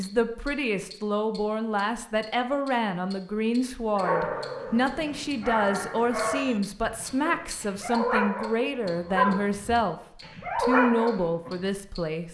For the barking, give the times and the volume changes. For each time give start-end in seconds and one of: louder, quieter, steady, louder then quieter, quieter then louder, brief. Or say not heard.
4.0-11.5 louder.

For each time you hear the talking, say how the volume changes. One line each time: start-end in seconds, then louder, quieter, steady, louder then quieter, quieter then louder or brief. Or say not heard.
0.0-12.2 steady.